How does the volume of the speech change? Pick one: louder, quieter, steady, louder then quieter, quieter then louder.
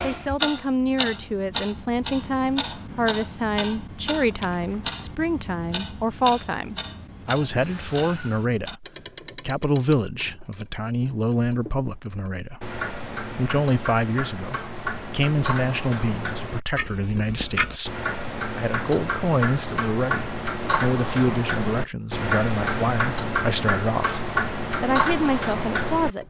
steady.